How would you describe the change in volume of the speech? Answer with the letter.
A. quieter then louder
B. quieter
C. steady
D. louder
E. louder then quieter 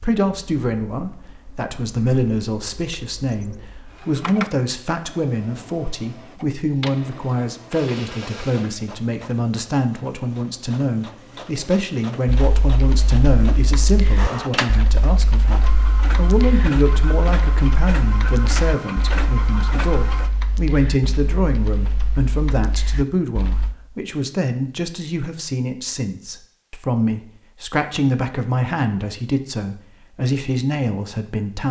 C.